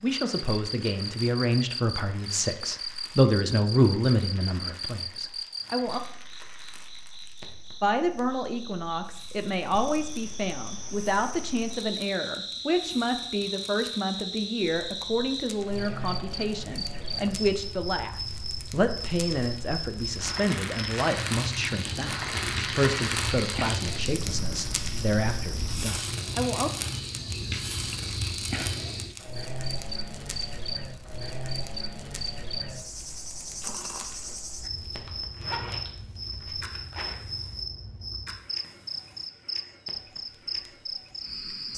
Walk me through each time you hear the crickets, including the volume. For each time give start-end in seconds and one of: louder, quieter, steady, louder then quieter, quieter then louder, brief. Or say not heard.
0.2-41.7 steady.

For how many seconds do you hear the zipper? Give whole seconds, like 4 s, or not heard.
2 s.